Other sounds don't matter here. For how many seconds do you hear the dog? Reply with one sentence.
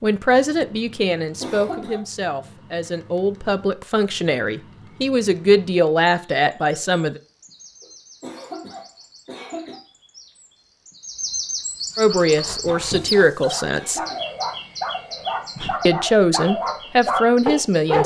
The dog can be heard for 6 seconds in total.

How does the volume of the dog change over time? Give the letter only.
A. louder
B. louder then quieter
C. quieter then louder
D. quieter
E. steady
A.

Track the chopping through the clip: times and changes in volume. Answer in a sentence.
The chopping can't be heard in this clip.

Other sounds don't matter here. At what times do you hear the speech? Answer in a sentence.
The speech can be heard from 0.0 to 7.2 s, from 11.9 to 14.0 s and from 15.8 to 18.0 s.